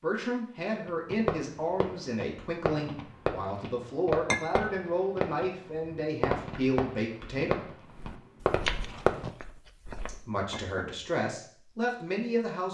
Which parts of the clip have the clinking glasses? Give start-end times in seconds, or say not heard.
4.2-4.7, 10.5-10.9.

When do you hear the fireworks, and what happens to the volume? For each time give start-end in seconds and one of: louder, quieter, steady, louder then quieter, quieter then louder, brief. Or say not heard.
0.8-9.3 steady.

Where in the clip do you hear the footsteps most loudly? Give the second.
9 s.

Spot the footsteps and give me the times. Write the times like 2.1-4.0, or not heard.
7.9-10.2.